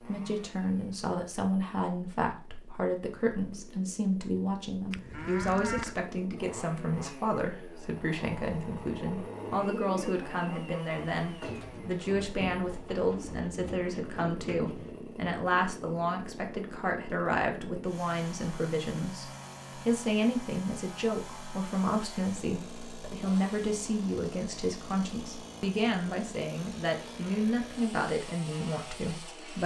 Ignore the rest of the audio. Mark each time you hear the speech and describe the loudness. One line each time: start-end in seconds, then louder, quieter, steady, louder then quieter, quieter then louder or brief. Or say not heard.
0.1-29.6 steady.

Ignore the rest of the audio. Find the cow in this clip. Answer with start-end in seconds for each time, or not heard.
4.9-6.0.